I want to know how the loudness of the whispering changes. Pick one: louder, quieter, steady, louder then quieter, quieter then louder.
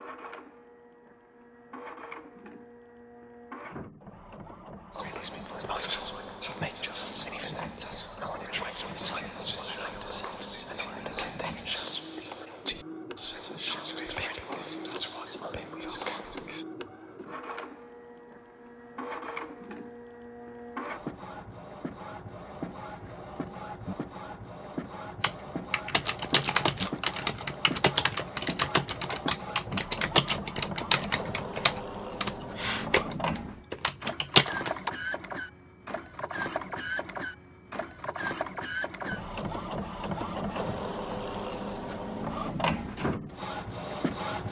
steady.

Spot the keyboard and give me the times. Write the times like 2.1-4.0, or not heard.
25.2-34.9.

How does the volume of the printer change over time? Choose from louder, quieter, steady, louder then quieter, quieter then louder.
louder.